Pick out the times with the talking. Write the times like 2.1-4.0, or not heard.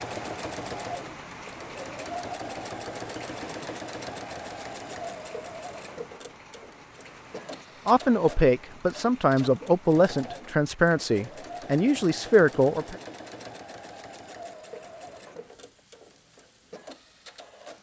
7.8-12.9.